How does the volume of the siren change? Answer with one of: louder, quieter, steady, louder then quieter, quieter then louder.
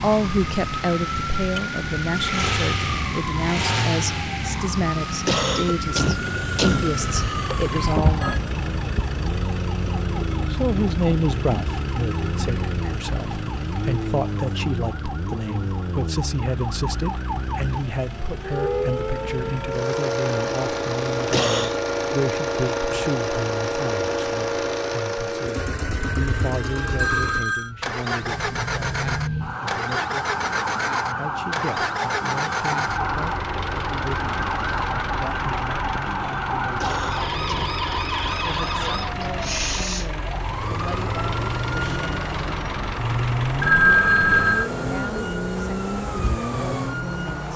steady.